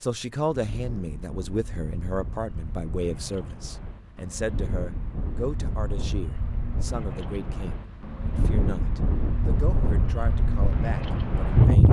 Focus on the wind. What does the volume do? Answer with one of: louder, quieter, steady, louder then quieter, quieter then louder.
louder.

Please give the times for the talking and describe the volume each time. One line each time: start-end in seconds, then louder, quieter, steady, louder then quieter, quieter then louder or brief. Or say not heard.
0.0-11.8 quieter.